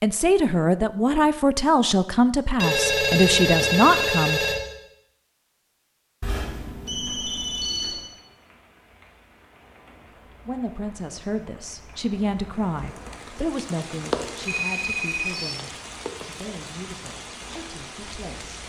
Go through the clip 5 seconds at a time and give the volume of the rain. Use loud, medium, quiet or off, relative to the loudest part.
off, quiet, loud, loud.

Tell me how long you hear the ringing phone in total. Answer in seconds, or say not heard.
5 s.